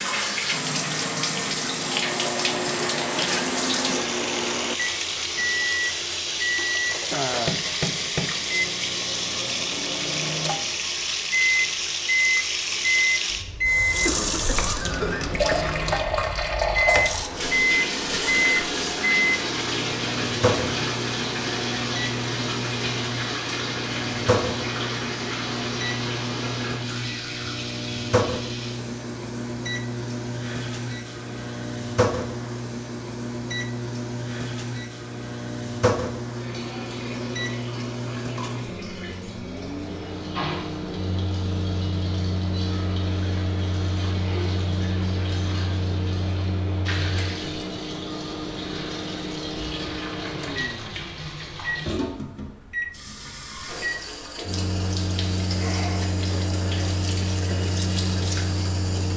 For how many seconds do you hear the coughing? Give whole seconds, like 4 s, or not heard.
2 s.